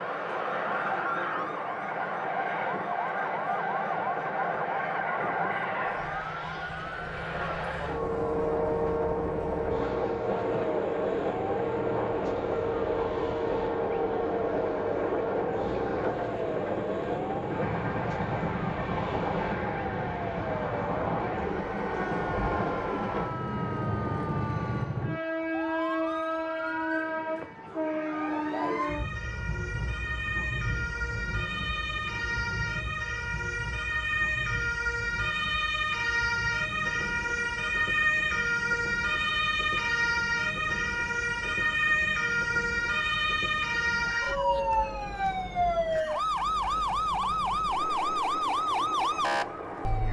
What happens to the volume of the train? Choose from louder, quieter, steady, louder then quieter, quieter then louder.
quieter.